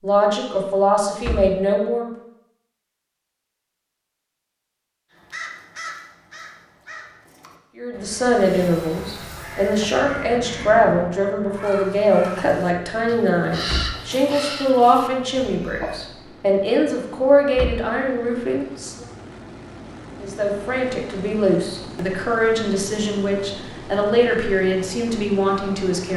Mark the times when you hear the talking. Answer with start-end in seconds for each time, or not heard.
0.0-2.1, 7.8-19.1, 20.1-26.1.